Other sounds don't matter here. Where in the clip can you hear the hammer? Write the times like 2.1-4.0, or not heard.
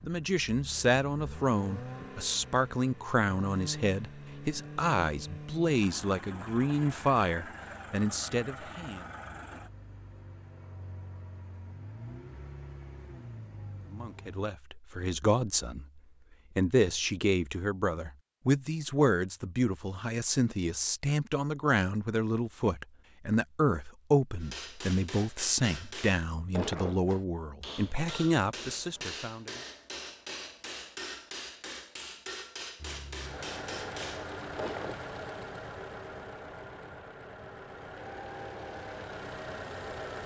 24.4-35.0.